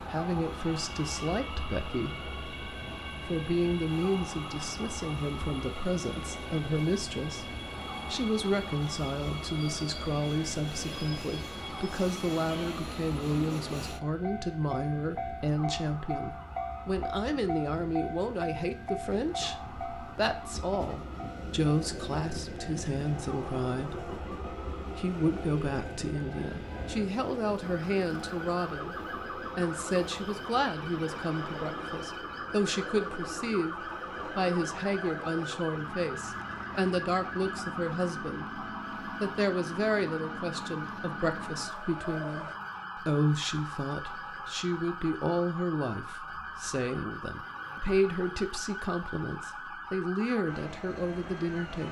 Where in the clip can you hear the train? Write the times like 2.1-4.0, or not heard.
0.0-42.5.